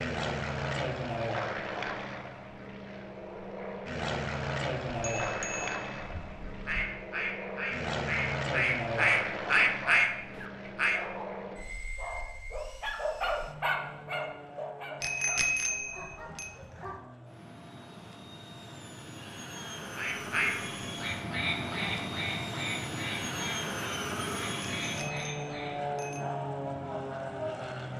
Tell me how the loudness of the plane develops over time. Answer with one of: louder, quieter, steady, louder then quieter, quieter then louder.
quieter then louder.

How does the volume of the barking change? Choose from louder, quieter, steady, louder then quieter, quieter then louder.
louder then quieter.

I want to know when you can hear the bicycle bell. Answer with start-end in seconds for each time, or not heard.
5.1-6.8, 15.0-16.5, 24.8-26.2.